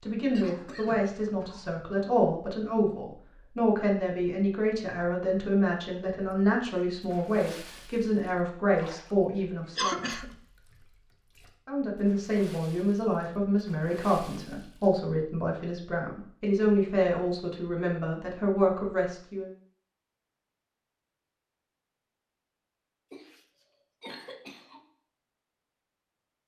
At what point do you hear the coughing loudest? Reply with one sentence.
The loudest moment of the coughing is at 10 seconds.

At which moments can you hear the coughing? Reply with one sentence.
You can hear the coughing from 0.3 to 1.7 s, from 9.8 to 10.3 s and from 23.1 to 24.8 s.